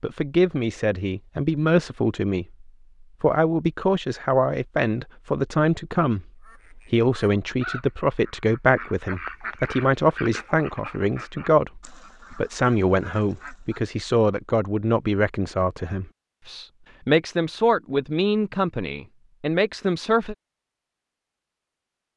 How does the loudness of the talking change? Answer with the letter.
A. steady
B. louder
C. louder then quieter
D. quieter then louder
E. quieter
A.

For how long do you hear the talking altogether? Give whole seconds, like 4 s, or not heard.
20 s.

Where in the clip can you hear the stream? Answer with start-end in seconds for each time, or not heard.
not heard.